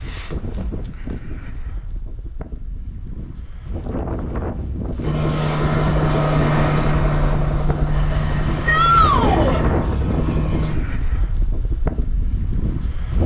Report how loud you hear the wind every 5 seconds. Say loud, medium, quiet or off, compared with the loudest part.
medium, loud, loud.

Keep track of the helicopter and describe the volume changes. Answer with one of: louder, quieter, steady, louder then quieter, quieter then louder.
quieter.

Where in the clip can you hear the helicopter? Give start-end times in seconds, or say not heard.
5.0-10.8.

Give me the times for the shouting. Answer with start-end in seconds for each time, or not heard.
8.7-9.6.